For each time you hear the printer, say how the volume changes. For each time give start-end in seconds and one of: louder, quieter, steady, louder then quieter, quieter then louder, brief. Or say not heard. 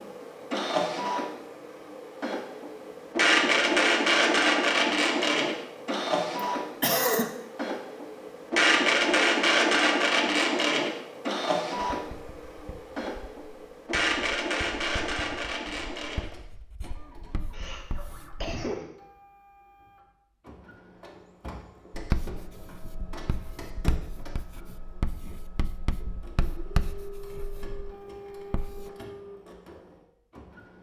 0.0-30.7 quieter.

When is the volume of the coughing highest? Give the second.
7 s.